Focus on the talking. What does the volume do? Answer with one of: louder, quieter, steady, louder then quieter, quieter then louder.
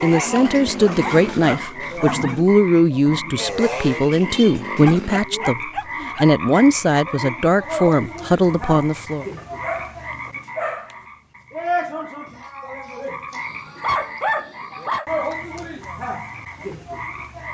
steady.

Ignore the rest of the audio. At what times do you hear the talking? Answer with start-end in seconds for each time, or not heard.
0.0-9.2.